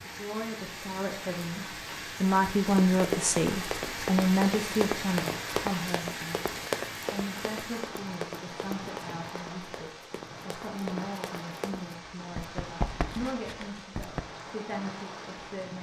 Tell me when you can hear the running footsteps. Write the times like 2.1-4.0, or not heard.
2.6-14.2.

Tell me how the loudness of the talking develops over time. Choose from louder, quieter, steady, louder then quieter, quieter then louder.
quieter.